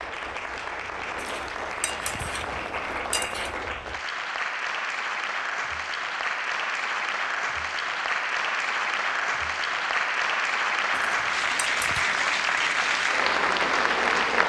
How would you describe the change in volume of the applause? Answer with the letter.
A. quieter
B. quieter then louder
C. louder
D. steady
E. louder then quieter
C.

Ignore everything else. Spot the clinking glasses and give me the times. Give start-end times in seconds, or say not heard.
1.1-3.6, 10.9-12.1.